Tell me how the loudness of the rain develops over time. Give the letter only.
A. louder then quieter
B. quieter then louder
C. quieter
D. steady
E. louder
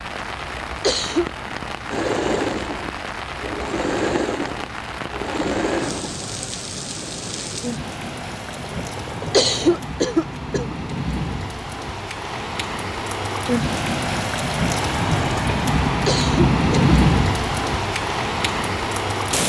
E.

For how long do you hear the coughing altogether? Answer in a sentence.
The coughing can be heard for 3 seconds in total.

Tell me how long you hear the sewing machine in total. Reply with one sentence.
The sewing machine can be heard for 8 seconds in total.